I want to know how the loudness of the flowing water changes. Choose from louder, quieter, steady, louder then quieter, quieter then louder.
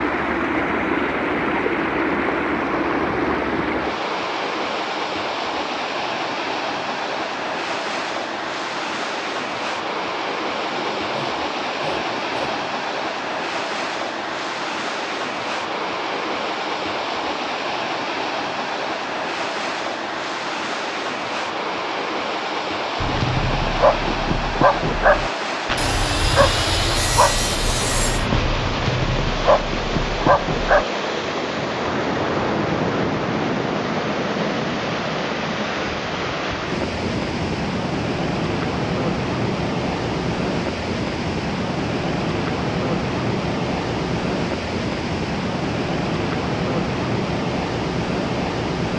steady.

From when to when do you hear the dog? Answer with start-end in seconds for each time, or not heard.
23.0-30.9.